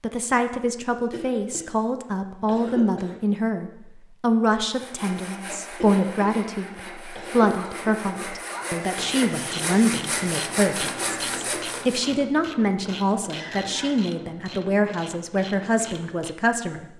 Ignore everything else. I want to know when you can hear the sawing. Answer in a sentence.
You can hear the sawing from 4.7 to 12.1 s.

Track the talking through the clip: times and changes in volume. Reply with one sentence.
The talking can be heard from 0.0 to 16.9 s, at a steady volume.